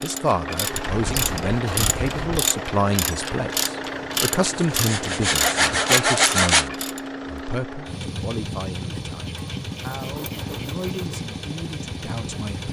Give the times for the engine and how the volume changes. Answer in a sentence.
The engine can be heard from 0.0 to 12.6 s, at a steady volume.